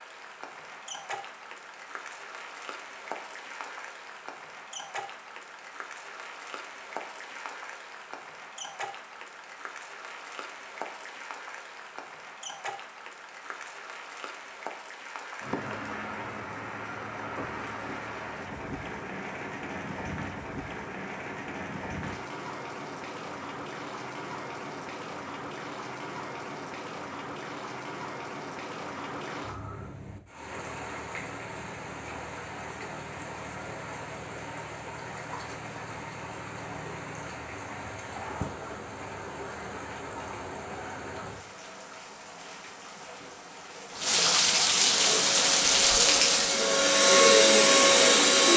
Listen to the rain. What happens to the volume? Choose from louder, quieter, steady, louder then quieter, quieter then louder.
louder.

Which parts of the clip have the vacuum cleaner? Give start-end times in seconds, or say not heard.
44.9-48.5.